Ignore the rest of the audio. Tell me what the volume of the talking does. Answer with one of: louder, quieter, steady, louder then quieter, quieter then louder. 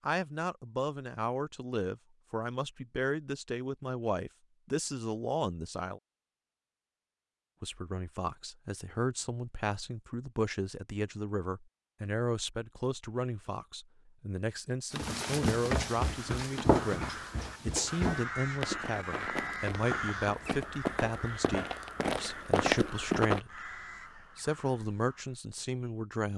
steady.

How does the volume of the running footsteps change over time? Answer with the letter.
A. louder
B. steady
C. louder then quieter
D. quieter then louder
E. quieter
D.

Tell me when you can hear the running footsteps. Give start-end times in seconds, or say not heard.
14.9-23.4.